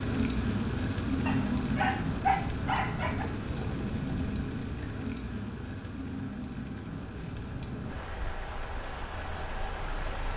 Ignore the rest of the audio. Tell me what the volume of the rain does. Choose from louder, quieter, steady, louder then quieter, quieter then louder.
quieter.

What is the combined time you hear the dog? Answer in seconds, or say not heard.
2 s.